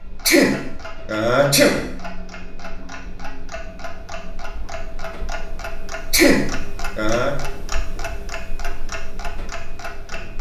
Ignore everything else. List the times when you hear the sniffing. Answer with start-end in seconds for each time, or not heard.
0.2-1.9, 6.1-7.3.